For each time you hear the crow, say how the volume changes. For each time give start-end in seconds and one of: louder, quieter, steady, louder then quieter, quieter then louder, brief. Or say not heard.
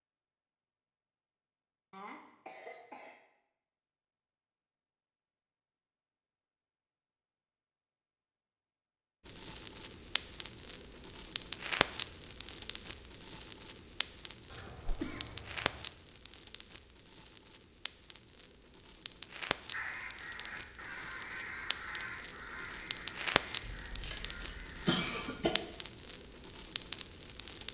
19.7-25.0 quieter.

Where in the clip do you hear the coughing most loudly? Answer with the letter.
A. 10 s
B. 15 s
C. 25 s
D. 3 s
C.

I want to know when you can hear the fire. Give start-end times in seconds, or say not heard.
9.2-27.6.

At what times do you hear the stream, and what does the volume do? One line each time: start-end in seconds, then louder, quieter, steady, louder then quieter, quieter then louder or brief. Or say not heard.
not heard.